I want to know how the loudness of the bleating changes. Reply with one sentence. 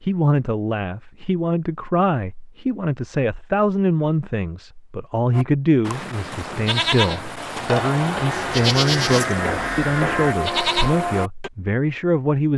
The volume of the bleating goes up.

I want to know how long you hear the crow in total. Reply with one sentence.
The crow can be heard for 2 seconds in total.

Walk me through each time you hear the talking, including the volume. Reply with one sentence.
The talking can be heard from 0.0 to 12.5 s, at a steady volume.